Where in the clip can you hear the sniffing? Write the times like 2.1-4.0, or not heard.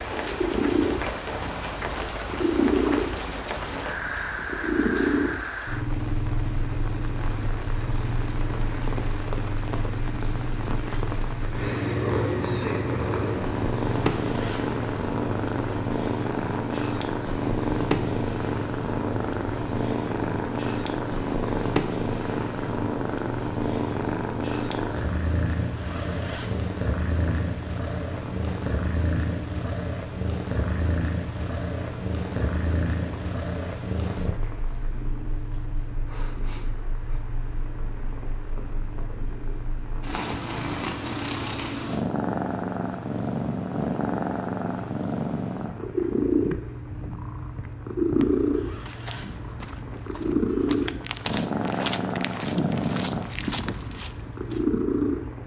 36.0-37.2.